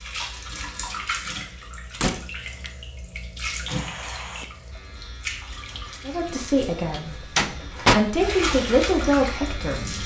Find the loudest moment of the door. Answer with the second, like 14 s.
8 s.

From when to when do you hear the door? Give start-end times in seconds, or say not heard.
2.0-2.7, 5.5-8.0.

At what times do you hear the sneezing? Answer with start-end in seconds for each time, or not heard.
3.6-4.8.